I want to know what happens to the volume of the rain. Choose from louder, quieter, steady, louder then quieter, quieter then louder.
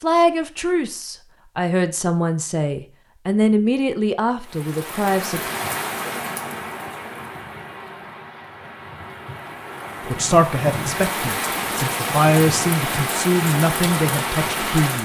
quieter then louder.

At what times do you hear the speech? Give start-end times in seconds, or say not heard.
0.0-5.4, 10.0-14.9.